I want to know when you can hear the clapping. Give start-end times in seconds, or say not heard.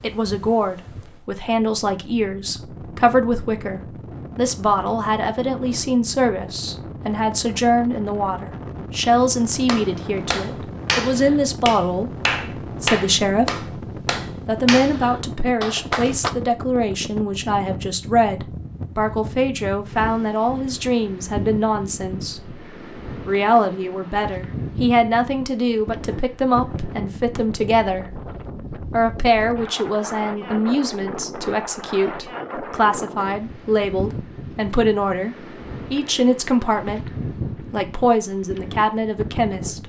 9.7-16.3.